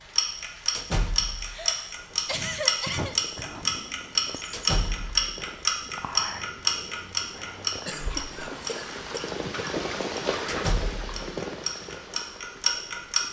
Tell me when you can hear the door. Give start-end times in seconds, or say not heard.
0.7-1.6, 4.5-5.2, 10.4-11.1.